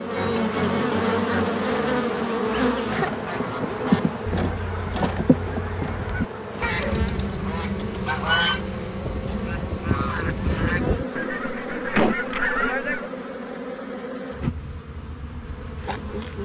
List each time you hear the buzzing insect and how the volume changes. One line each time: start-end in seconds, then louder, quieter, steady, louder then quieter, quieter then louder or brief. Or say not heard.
0.0-16.4 quieter.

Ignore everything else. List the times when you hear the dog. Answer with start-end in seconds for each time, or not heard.
not heard.